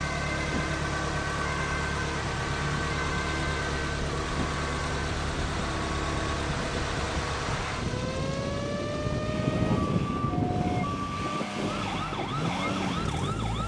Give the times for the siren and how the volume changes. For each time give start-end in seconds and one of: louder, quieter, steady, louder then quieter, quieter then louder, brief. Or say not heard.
0.0-13.6 steady.